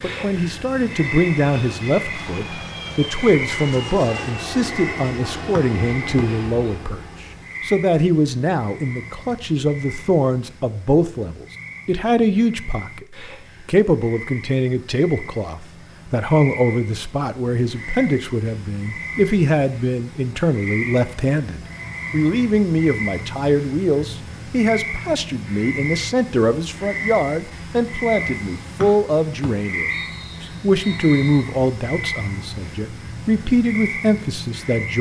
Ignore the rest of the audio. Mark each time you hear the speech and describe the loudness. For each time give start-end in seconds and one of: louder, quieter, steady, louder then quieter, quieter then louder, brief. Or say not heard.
0.0-34.9 steady.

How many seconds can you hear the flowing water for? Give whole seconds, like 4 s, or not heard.
not heard.